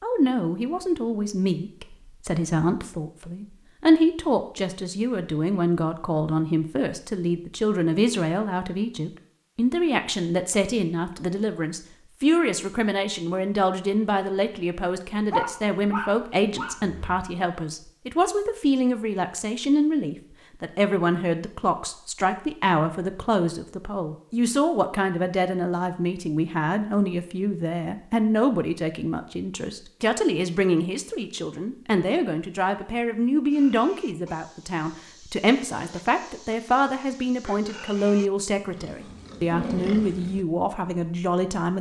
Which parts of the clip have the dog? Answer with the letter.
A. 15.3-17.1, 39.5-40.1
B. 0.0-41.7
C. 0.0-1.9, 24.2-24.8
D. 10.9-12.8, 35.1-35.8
A.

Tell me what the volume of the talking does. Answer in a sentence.
The loudness of the talking stays about the same.